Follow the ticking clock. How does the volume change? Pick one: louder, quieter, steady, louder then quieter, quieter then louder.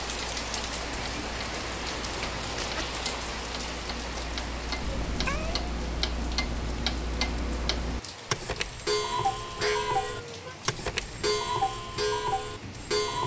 louder.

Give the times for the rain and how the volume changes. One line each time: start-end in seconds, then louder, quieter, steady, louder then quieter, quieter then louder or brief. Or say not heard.
0.0-13.2 quieter.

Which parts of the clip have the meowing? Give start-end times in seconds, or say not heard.
0.8-2.9, 4.8-5.7, 9.6-10.6.